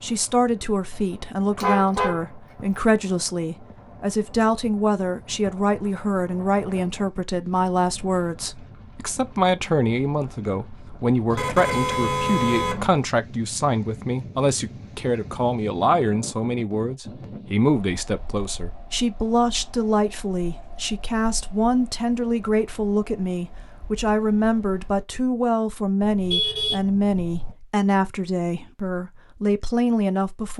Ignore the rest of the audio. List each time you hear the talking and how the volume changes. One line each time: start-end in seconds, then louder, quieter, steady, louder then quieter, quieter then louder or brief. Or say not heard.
0.0-30.5 steady.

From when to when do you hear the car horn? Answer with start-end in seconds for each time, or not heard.
1.6-2.6, 11.3-12.9, 26.0-27.6.